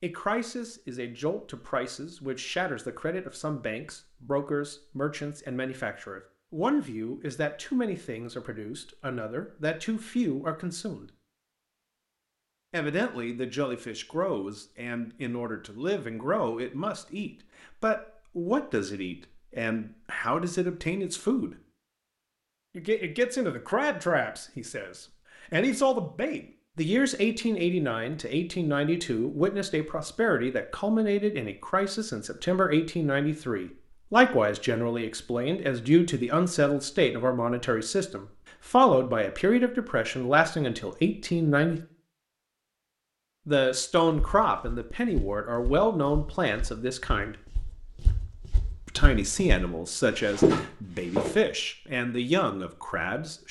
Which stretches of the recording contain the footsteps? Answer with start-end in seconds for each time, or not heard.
44.1-51.4.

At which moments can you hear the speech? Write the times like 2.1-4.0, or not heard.
0.0-11.1, 12.7-21.6, 22.8-41.8, 43.5-47.4, 48.9-53.4.